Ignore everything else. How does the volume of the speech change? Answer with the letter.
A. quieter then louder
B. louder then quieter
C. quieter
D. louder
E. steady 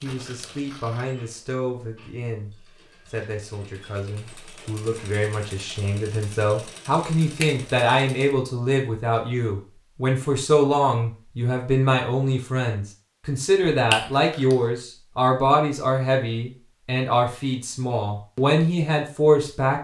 D.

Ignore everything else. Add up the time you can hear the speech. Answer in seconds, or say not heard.
20 s.